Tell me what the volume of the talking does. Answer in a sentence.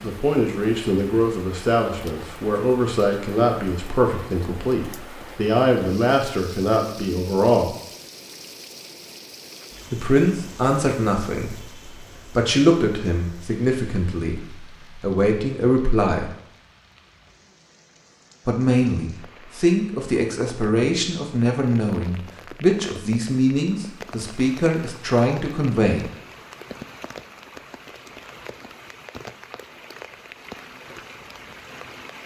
The volume of the talking stays about the same.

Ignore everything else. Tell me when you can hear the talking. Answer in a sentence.
The talking can be heard from 0.0 to 7.8 s, from 9.9 to 16.3 s and from 18.4 to 26.1 s.